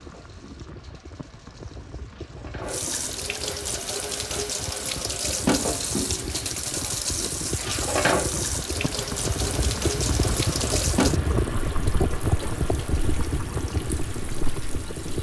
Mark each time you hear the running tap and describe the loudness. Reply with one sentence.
The running tap can be heard from 0.0 to 15.1 s, getting louder then quieter.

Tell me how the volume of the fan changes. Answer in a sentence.
The volume of the fan goes up.